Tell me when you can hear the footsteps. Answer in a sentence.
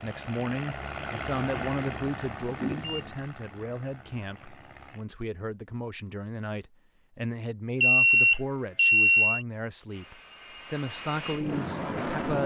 The footsteps can't be heard in this clip.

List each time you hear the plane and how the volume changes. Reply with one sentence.
You can hear the plane from 0.0 to 5.0 s, getting quieter; and briefly from 9.8 to 12.4 s.